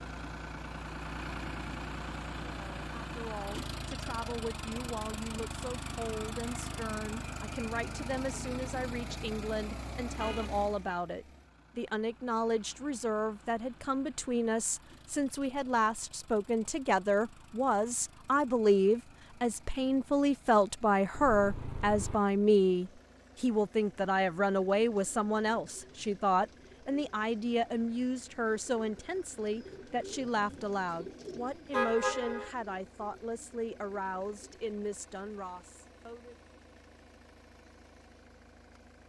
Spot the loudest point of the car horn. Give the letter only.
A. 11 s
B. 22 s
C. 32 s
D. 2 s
C.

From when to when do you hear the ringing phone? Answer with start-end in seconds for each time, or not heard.
not heard.